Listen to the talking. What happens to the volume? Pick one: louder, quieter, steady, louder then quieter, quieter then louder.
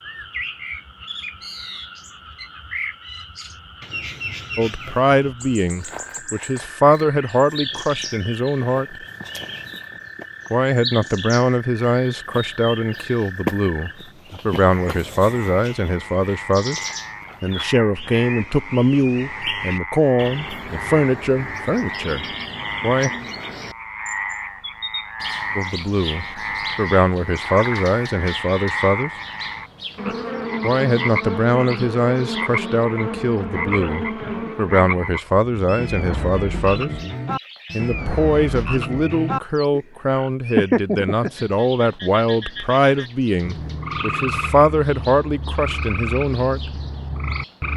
steady.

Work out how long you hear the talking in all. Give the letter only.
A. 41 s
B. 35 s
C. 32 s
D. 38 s
B.